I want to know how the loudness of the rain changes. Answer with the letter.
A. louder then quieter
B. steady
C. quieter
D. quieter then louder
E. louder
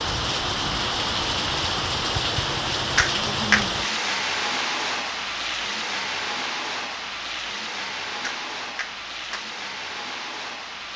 C.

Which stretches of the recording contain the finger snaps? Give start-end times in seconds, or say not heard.
3.0-3.6, 8.2-9.4.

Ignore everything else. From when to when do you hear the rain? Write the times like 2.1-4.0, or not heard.
0.0-10.9.